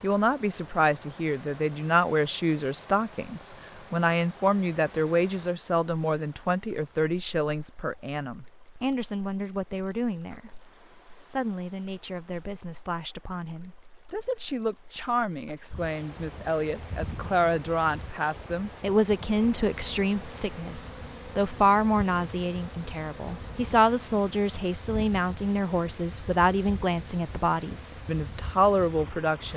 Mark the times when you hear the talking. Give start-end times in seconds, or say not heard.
0.0-29.5.